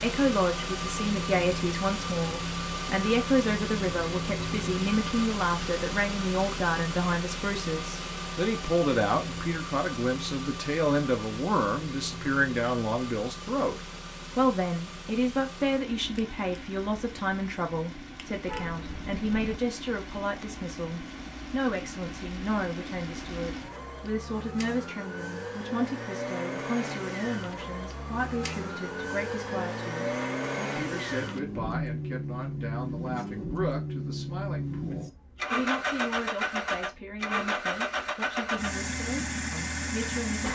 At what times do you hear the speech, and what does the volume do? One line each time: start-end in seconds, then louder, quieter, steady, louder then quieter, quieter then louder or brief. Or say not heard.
0.0-40.4 quieter.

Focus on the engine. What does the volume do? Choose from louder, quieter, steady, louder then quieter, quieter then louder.
quieter then louder.